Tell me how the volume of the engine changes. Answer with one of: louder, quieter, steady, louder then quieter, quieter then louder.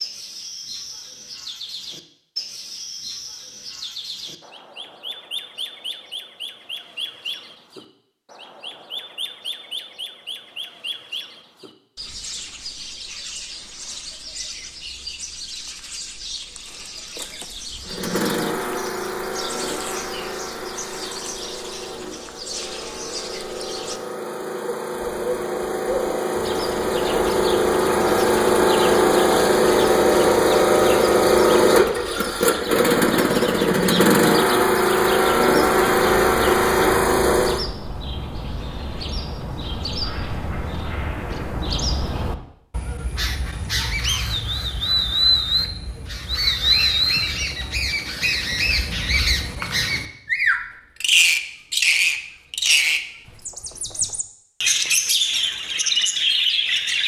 louder.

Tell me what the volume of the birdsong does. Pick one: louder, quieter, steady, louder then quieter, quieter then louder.
louder.